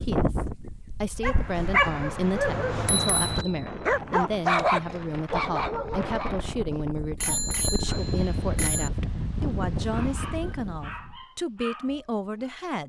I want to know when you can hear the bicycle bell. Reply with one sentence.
The bicycle bell can be heard from 2.7 to 3.6 s and from 7.2 to 8.9 s.